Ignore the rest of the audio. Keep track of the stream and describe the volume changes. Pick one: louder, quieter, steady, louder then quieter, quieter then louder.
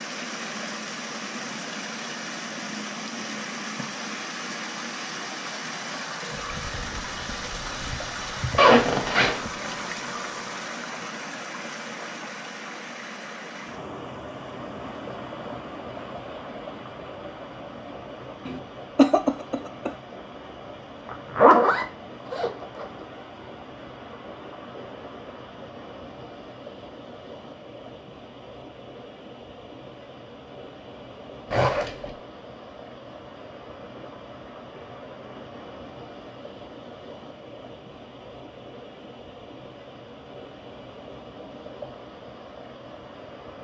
quieter.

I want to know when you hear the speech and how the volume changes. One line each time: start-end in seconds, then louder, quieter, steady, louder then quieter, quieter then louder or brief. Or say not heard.
not heard.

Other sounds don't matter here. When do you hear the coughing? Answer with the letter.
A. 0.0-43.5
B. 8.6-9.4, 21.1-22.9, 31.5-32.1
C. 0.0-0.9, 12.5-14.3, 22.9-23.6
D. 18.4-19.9
D.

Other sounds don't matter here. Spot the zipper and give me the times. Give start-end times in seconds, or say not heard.
8.6-9.4, 21.1-22.9, 31.5-32.1.